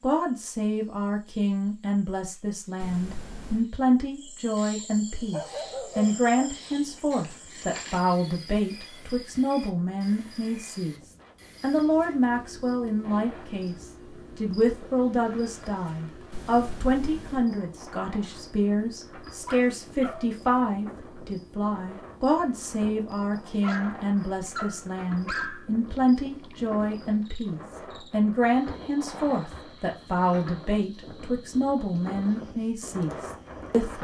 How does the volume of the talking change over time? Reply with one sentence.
The loudness of the talking stays about the same.